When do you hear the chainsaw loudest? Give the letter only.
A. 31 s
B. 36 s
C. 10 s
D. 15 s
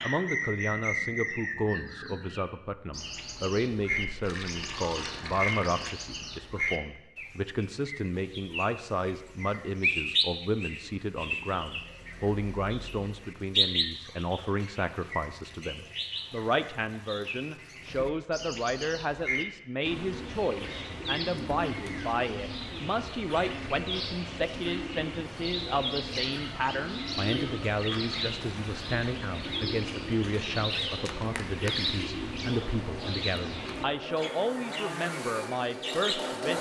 B.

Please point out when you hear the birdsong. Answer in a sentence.
The birdsong can be heard from 0.0 to 36.4 s.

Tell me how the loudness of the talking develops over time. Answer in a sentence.
The volume of the talking stays about the same.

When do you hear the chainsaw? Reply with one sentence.
You can hear the chainsaw from 32.4 to 36.5 s.